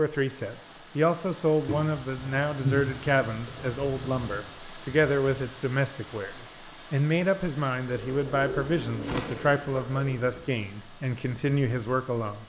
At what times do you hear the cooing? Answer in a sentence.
You can hear the cooing from 1.6 to 4.4 s and from 7.8 to 10.4 s.